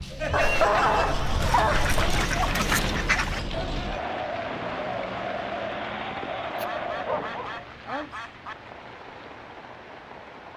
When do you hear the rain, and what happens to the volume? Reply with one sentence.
You can hear the rain from 0.0 to 10.5 s, getting quieter.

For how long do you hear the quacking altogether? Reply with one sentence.
The quacking can be heard for 4 seconds in total.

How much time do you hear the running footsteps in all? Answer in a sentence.
You can't hear the running footsteps here.